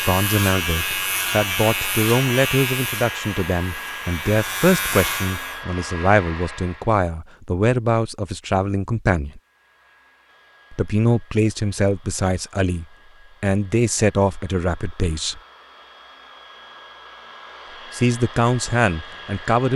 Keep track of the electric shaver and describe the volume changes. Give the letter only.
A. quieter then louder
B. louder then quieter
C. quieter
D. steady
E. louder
A.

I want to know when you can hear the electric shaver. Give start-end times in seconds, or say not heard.
0.0-5.6.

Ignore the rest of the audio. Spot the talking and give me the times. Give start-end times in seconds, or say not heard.
0.0-9.4, 10.7-15.4, 17.9-19.7.